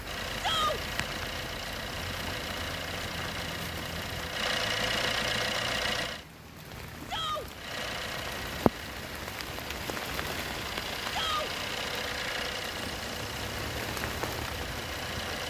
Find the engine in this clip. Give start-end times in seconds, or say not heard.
0.0-6.2, 7.5-15.4.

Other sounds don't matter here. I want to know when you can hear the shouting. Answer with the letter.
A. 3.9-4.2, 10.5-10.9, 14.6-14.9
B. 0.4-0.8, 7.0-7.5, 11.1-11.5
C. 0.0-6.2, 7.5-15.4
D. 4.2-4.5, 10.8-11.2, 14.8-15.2
B.